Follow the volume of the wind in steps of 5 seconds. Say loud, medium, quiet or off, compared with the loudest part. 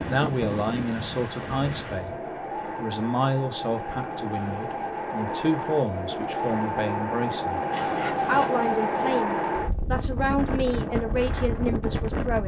medium, loud, loud.